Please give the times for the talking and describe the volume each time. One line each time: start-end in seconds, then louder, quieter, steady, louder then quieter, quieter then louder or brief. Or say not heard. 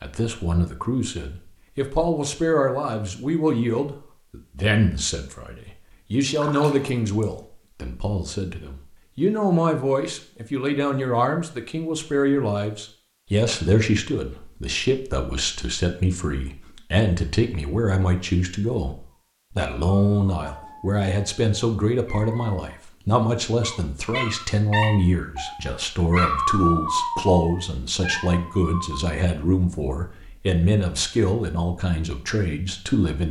0.0-33.2 steady.